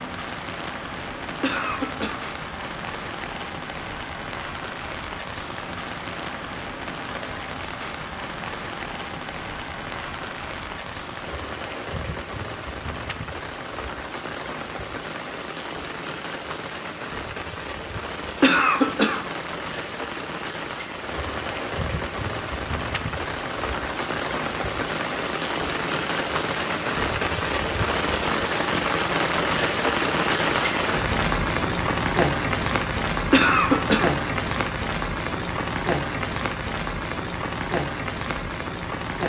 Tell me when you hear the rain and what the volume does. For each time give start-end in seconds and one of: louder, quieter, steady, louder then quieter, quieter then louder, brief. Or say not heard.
0.0-39.2 louder.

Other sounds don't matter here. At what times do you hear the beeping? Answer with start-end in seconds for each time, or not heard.
not heard.